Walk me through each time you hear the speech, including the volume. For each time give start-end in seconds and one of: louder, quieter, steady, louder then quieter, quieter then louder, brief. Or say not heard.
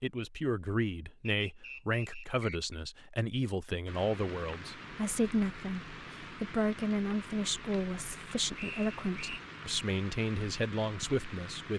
0.0-11.7 steady.